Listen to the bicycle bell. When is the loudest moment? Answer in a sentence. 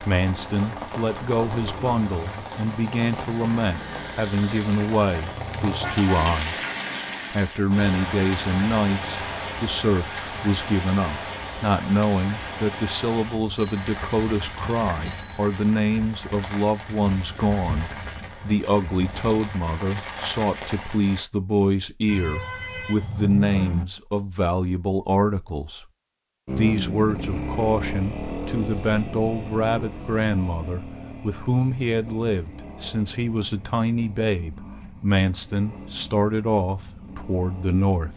The loudest moment of the bicycle bell is at 15 seconds.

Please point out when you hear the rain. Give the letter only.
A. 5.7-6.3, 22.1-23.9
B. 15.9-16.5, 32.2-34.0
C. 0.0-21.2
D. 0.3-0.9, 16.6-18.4
C.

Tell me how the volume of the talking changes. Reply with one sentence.
The volume of the talking stays about the same.